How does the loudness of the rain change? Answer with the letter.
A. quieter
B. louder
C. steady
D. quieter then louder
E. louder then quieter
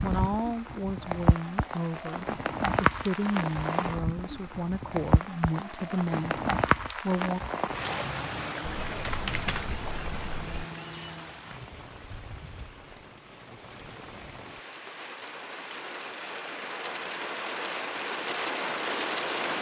D.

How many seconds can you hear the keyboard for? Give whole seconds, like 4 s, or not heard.
2 s.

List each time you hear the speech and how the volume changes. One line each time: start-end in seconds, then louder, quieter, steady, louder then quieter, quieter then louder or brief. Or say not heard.
0.0-7.4 steady.